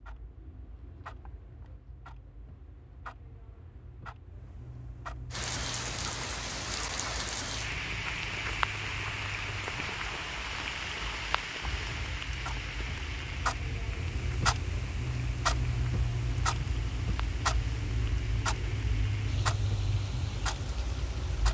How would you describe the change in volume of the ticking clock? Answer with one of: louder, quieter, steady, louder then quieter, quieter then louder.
louder.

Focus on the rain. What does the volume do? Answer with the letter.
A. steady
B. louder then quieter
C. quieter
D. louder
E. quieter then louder
C.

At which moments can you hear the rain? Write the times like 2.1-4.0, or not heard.
5.3-21.5.